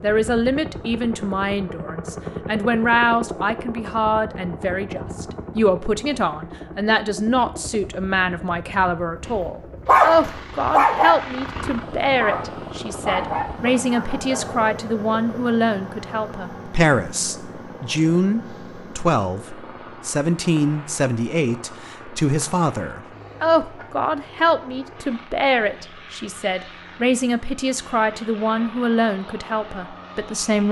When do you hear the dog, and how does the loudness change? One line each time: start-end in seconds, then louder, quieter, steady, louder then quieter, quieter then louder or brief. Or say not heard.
9.2-14.7 quieter.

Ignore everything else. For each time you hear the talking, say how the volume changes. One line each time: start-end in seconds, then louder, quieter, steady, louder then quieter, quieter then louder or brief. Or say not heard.
0.0-30.6 steady.